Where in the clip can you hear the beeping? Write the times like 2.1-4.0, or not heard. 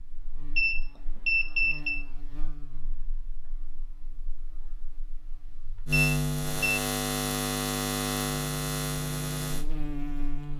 0.6-2.0, 5.9-6.8.